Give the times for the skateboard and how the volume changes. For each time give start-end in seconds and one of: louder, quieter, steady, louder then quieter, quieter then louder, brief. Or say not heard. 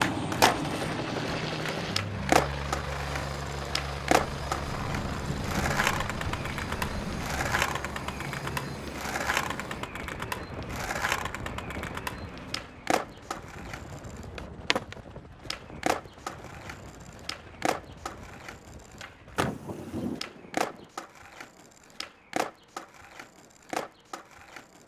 0.0-24.8 quieter.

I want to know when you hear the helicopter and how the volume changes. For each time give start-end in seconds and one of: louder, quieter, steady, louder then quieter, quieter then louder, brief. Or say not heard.
0.0-20.9 quieter.